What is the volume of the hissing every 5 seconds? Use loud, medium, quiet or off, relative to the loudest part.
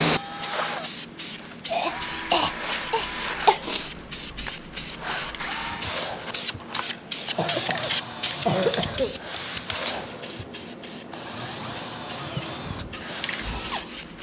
loud, loud, medium.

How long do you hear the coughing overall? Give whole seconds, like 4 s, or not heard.
4 s.